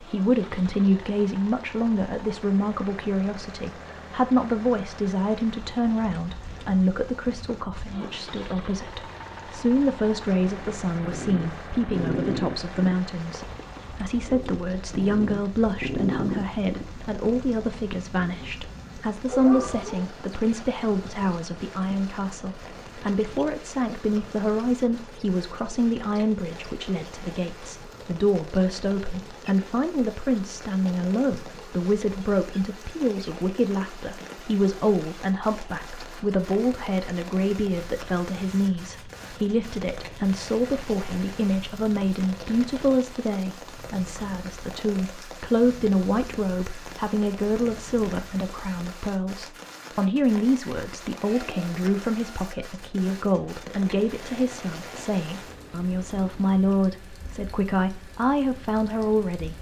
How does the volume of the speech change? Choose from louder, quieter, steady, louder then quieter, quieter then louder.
steady.